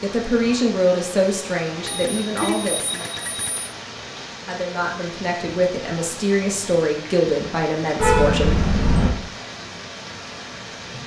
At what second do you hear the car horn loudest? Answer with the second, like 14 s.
8 s.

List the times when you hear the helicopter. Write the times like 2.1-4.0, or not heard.
not heard.